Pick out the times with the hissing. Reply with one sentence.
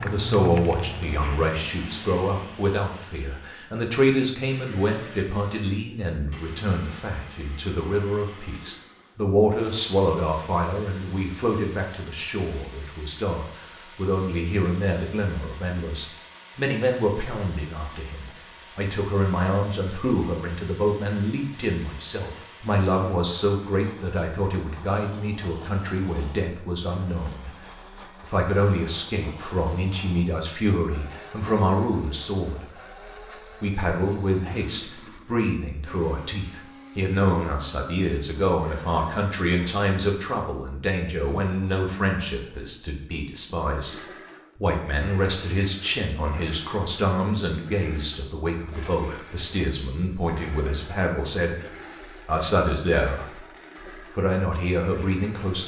The hissing can be heard from 0.0 to 2.6 s.